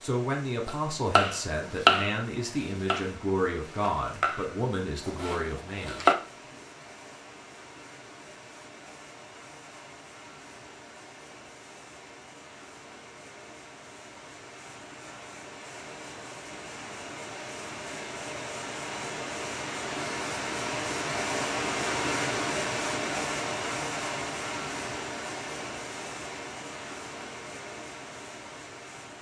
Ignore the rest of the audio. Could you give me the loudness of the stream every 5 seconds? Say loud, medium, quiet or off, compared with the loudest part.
quiet, quiet, quiet, medium, loud, medium.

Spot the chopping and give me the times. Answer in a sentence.
The chopping can be heard from 0.7 to 6.2 s.